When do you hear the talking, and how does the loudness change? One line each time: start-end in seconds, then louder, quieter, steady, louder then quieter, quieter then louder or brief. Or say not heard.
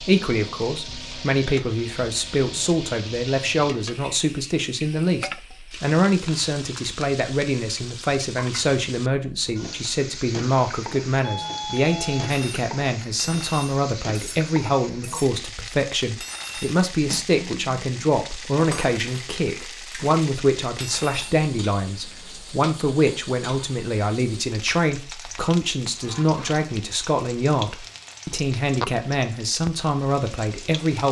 0.0-31.0 steady.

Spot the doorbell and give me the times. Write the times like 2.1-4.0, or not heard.
11.2-12.3.